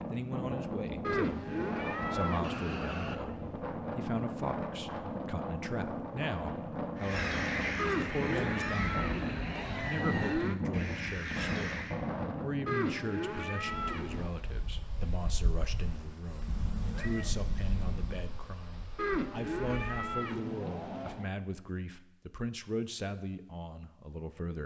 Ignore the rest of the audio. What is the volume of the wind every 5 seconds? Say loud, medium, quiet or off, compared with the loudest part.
loud, loud, loud, medium, off.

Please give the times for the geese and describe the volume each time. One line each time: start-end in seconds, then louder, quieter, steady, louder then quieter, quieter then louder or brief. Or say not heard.
7.0-11.9 quieter then louder.